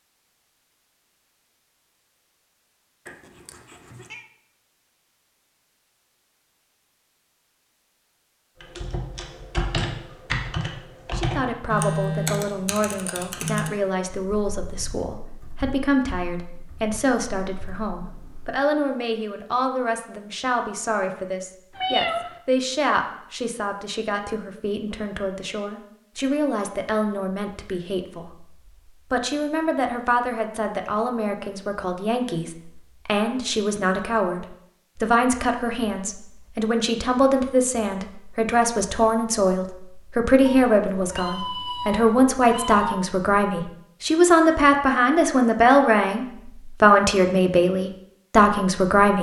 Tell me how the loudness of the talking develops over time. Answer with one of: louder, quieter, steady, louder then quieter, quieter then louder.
louder.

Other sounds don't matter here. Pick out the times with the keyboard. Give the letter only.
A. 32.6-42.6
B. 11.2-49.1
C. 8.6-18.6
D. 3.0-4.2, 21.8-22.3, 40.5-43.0
C.